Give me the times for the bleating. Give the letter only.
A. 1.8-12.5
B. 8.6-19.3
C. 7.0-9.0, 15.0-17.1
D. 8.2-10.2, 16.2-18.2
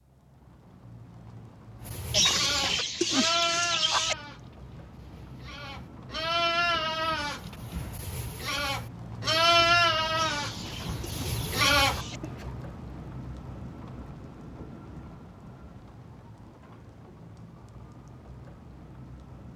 A.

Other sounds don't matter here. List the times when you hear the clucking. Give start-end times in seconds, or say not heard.
2.1-4.2, 10.2-12.2.